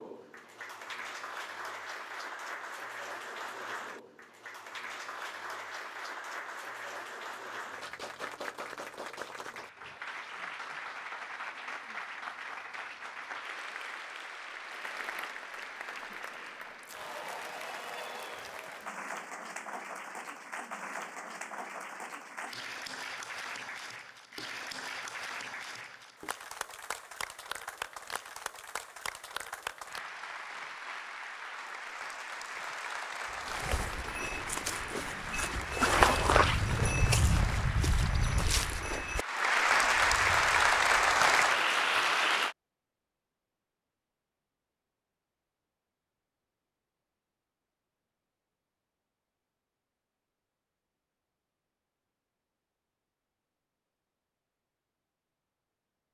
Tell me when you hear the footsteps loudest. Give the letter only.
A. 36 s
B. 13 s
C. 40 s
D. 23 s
A.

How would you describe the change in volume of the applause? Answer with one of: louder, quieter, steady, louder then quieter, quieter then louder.
louder.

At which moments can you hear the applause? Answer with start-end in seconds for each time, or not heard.
0.0-42.5.